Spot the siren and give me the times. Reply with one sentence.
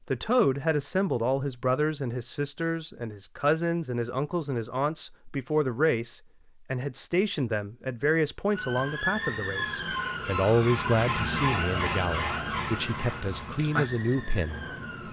The siren can be heard from 8.5 to 15.0 s.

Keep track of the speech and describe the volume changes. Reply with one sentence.
The volume of the speech stays about the same.